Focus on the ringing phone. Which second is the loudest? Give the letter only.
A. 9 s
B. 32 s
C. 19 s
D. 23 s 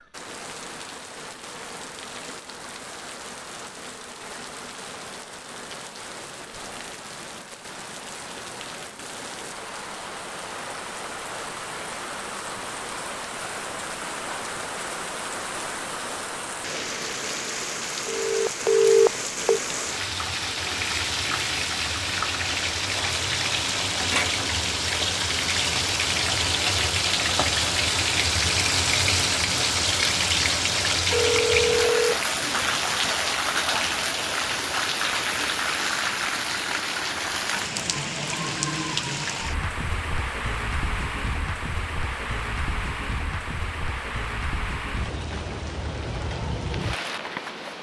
C.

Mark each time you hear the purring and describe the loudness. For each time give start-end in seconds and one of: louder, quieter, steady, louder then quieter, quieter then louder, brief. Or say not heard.
not heard.